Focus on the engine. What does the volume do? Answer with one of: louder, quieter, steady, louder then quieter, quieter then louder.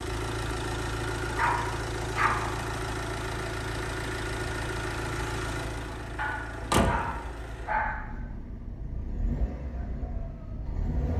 quieter.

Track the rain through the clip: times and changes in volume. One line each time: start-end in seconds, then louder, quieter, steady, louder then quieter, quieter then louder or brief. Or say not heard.
not heard.